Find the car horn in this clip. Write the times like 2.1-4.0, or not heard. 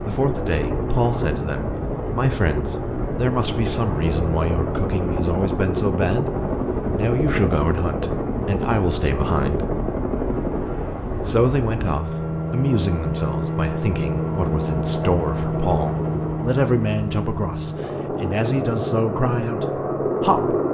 not heard.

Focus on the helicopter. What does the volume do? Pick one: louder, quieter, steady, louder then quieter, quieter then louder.
steady.